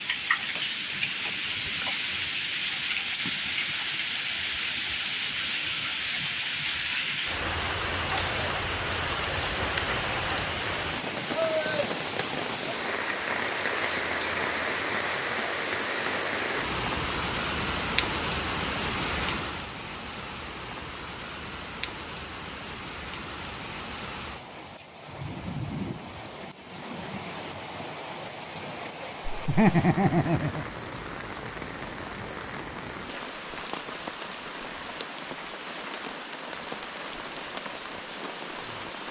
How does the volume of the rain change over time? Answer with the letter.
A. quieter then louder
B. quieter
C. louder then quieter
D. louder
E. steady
B.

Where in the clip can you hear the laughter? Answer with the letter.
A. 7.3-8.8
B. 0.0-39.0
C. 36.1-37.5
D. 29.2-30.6
D.